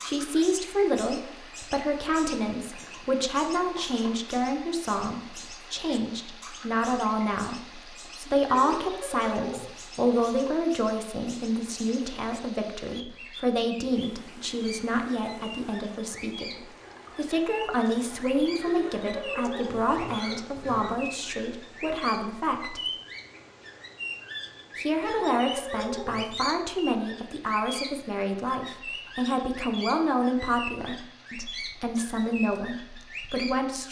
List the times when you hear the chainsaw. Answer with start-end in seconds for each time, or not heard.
not heard.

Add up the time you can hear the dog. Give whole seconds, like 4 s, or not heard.
not heard.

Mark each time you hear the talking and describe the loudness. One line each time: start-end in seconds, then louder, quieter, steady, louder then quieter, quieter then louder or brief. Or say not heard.
0.0-22.8 steady
24.8-33.8 steady.